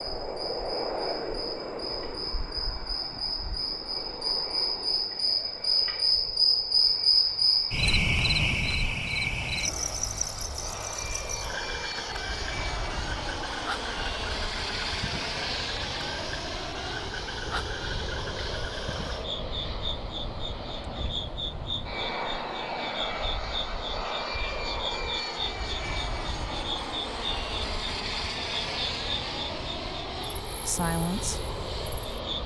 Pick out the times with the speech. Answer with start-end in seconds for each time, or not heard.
30.6-31.4.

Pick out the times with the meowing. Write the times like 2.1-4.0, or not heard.
not heard.